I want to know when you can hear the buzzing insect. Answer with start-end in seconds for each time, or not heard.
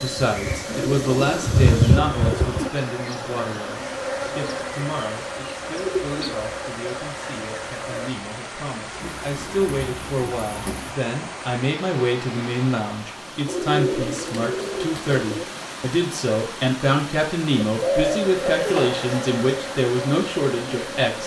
0.0-8.1, 18.0-21.1.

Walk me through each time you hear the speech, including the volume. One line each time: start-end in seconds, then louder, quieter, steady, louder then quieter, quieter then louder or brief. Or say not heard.
0.0-21.2 quieter then louder.